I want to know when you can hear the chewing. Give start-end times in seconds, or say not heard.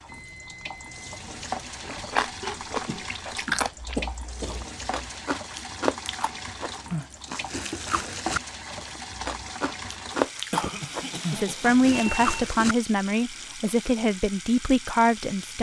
1.8-12.8.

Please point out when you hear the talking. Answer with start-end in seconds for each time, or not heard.
11.3-15.5.